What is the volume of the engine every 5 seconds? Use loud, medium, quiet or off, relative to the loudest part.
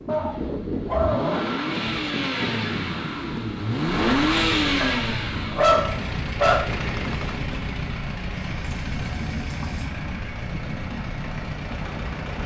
loud, medium, medium.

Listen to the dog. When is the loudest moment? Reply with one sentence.
The loudest moment of the dog is at 6 seconds.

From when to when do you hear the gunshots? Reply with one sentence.
You can hear the gunshots from 6.7 to 7.7 s.